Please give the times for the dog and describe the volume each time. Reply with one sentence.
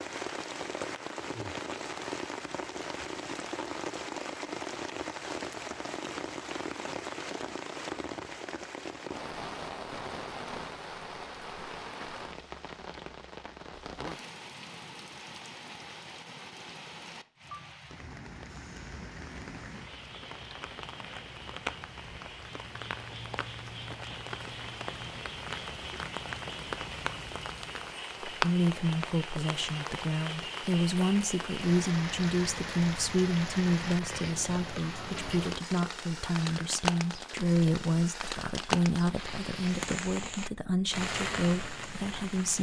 You can't hear the dog here.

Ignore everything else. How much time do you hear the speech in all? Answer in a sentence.
The speech can be heard for 14 seconds in total.